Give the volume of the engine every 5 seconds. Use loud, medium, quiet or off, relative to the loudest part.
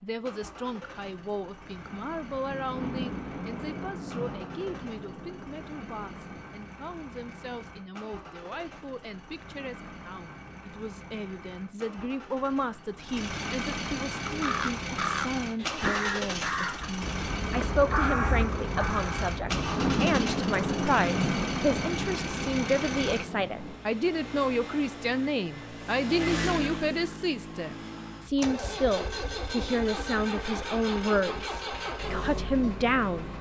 medium, medium, loud, loud, loud, loud, loud.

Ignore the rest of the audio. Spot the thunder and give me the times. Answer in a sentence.
The thunder can be heard from 2.3 to 6.5 s and from 19.3 to 23.9 s.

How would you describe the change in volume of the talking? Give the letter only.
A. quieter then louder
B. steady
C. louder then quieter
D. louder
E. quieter
D.